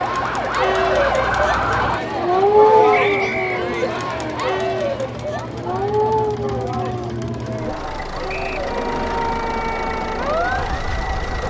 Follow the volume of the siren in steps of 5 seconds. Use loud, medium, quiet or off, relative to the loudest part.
loud, medium, medium.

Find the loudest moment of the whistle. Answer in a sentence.
The loudest moment of the whistle is at 3 seconds.